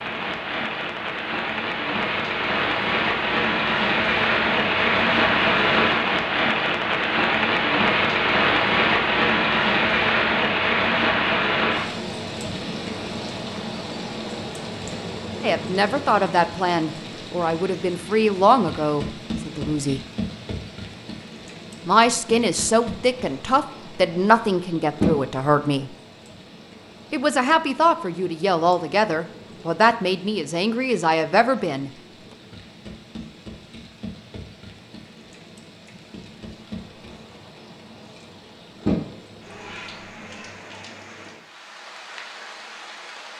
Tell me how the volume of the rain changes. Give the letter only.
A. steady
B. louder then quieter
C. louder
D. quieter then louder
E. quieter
D.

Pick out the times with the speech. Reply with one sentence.
The speech can be heard from 15.4 to 20.0 s, from 21.9 to 25.9 s and from 27.1 to 31.9 s.